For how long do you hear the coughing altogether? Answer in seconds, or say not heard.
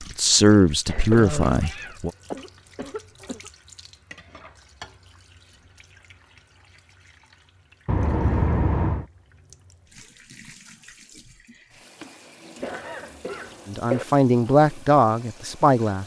5 s.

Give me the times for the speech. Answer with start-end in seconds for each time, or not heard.
0.0-2.1, 13.7-16.0.